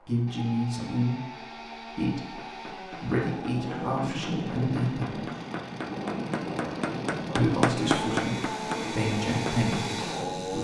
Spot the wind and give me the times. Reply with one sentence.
You can hear the wind from 3.5 to 10.5 s.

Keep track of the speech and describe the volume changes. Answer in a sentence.
The loudness of the speech stays about the same.